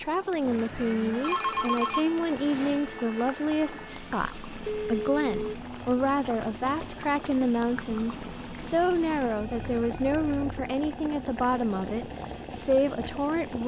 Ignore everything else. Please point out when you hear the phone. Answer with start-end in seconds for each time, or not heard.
1.2-2.8, 4.7-5.5, 9.3-10.5.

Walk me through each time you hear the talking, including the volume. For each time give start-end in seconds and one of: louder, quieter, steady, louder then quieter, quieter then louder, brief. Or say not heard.
0.0-13.6 steady.